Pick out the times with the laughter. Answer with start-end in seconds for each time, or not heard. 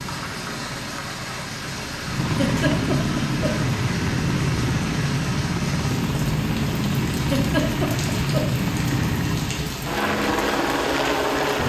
2.2-3.7, 7.2-8.6.